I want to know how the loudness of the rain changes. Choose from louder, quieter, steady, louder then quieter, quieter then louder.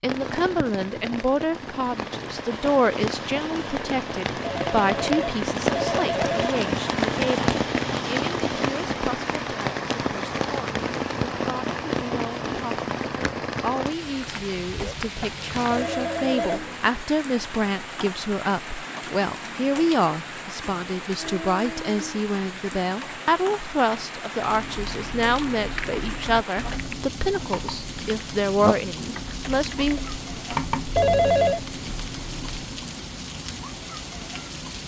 quieter.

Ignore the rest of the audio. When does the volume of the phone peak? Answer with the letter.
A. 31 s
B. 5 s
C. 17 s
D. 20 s
A.